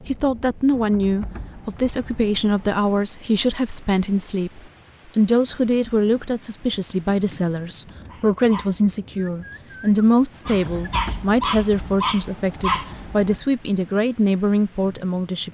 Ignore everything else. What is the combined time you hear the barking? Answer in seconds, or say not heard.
5 s.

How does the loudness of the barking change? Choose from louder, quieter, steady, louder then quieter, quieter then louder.
quieter then louder.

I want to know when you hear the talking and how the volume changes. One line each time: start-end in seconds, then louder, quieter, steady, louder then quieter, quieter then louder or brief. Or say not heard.
0.1-15.4 steady.